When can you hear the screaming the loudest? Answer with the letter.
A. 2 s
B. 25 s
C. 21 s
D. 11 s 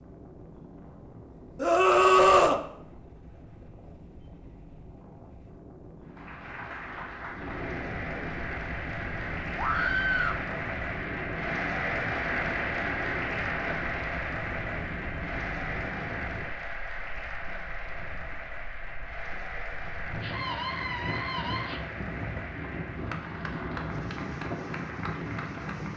A.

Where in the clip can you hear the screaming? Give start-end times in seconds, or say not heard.
1.6-2.6, 9.6-10.4, 20.2-21.8.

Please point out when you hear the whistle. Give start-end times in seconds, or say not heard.
not heard.